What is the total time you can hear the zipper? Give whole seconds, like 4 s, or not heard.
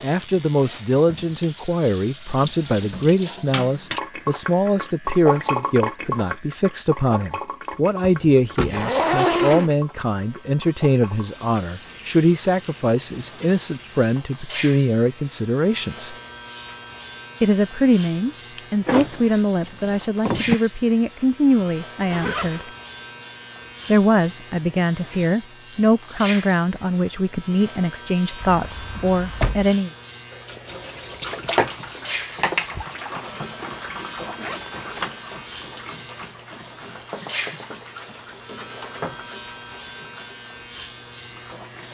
3 s.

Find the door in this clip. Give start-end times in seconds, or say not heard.
8.0-8.8, 18.6-20.6, 28.4-29.8.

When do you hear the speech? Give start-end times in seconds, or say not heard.
0.0-16.1, 17.4-22.6, 23.9-29.9.